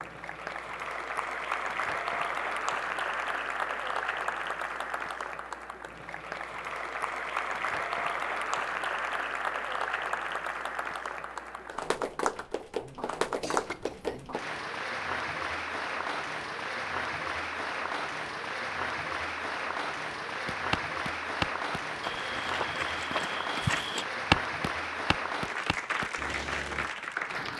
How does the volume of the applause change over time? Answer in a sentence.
The loudness of the applause stays about the same.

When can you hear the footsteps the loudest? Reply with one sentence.
The loudest moment of the footsteps is at 24 seconds.